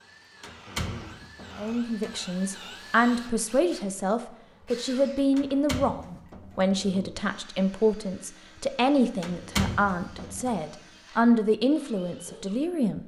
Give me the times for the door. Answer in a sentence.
The door can be heard from 0.4 to 2.2 s, from 5.3 to 6.8 s and from 9.2 to 10.6 s.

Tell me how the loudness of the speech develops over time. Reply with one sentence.
The volume of the speech stays about the same.